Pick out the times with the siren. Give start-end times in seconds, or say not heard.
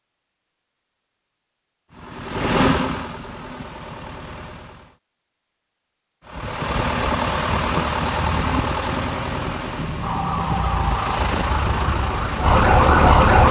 10.0-13.4.